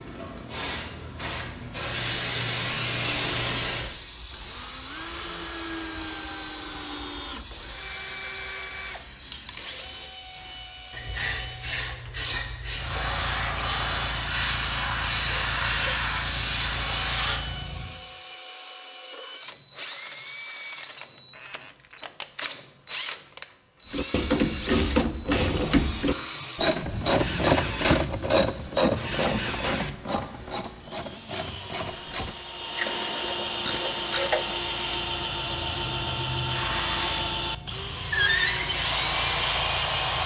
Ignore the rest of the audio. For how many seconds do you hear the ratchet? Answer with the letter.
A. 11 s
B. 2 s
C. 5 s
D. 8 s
A.